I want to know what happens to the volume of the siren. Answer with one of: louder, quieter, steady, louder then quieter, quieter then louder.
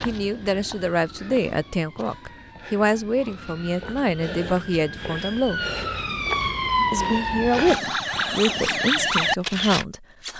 louder.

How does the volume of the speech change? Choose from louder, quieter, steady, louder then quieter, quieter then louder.
steady.